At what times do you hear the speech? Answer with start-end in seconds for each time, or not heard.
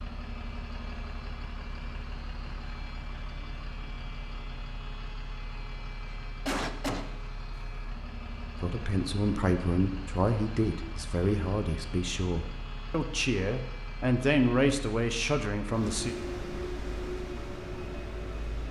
8.6-16.1.